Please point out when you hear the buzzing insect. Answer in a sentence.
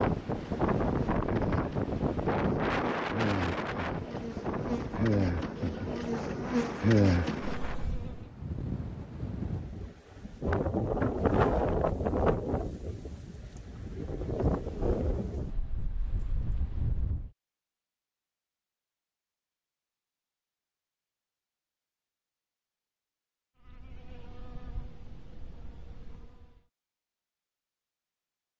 You can hear the buzzing insect from 0.2 to 8.2 s and from 23.6 to 26.6 s.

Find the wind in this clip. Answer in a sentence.
You can hear the wind from 0.0 to 17.3 s.